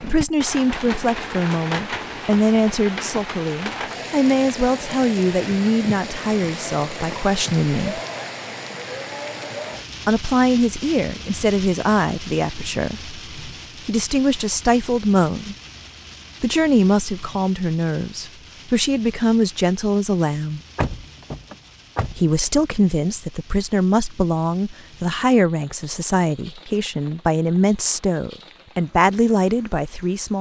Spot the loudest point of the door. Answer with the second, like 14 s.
21 s.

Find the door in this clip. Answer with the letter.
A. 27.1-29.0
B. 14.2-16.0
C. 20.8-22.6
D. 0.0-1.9
C.